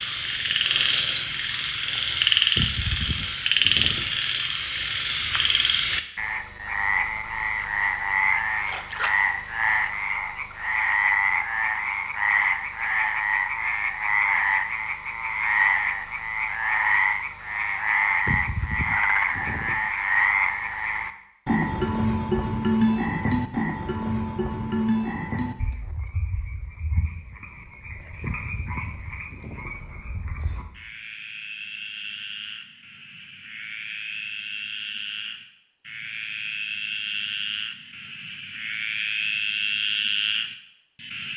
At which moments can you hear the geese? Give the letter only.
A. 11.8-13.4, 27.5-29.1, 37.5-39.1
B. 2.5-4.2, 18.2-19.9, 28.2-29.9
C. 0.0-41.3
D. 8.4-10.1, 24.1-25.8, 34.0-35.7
B.